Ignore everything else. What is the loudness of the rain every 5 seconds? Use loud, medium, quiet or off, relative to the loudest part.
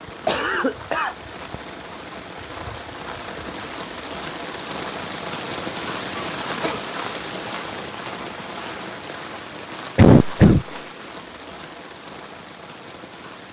loud, loud, medium.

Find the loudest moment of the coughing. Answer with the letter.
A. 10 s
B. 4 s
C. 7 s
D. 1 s
A.